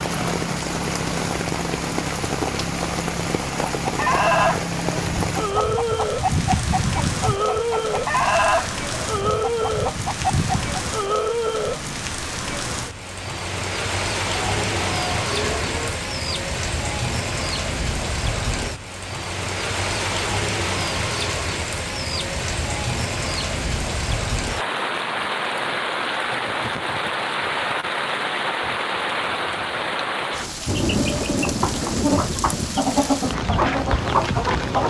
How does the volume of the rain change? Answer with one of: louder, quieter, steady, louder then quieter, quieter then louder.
steady.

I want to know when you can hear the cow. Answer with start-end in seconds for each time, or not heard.
14.3-15.9.